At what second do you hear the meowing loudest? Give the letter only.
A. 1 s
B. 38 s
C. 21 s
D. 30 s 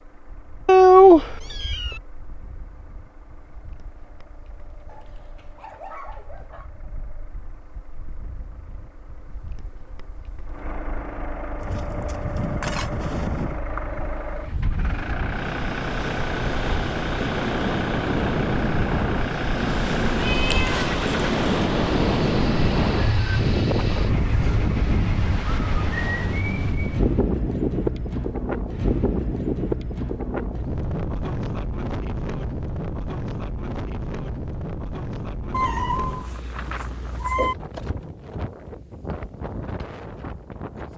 A.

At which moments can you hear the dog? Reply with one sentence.
You can hear the dog from 4.8 to 6.7 s.